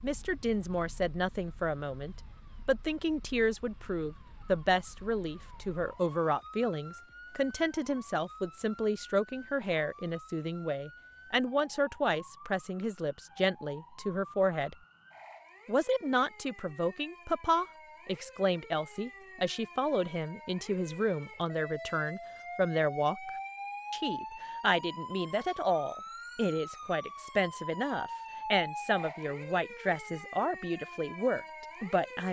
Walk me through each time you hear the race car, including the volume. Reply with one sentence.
You can't hear the race car here.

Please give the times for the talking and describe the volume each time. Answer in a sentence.
The talking can be heard from 0.0 to 14.8 s, at a steady volume; from 15.7 to 23.3 s, at a steady volume; and from 23.9 to 32.2 s, at a steady volume.